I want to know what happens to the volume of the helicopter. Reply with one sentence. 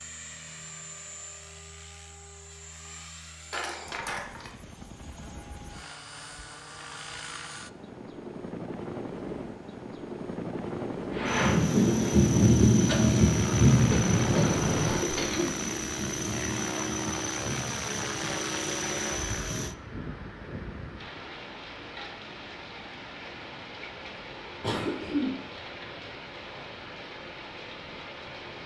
The volume of the helicopter goes up.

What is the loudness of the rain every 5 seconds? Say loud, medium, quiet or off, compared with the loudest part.
off, off, loud, quiet, quiet, quiet.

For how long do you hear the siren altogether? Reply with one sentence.
You can't hear the siren here.